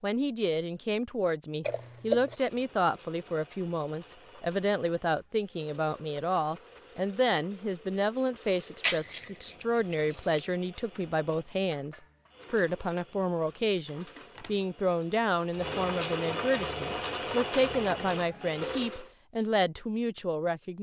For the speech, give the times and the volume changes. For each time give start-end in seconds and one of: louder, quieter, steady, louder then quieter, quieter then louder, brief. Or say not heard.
0.0-20.7 steady.